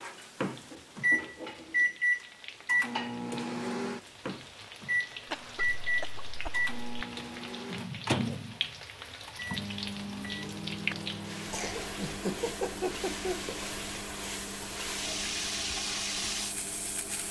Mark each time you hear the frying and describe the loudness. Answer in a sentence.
You can hear the frying from 0.0 to 17.2 s, getting louder.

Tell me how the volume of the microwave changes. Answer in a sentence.
The volume of the microwave goes down.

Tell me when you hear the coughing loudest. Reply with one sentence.
The volume of the coughing peaks at 13 seconds.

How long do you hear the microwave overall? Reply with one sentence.
The microwave can be heard for 17 seconds in total.